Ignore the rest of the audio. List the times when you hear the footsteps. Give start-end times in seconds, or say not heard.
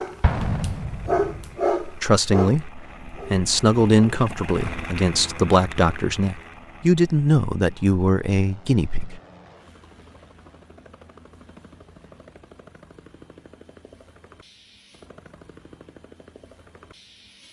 not heard.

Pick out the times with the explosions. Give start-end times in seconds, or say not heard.
0.2-1.6.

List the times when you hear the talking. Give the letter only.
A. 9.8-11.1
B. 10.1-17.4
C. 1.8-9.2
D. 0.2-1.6
C.